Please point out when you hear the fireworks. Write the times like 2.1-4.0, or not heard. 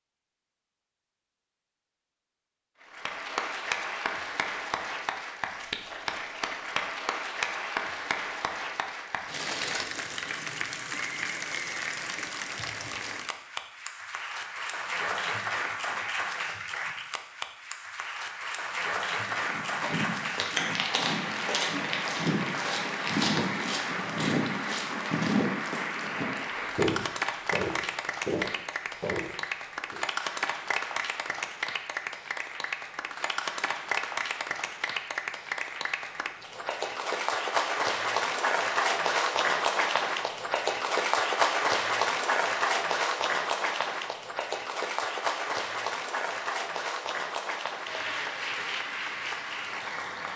not heard.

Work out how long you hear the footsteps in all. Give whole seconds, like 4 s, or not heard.
11 s.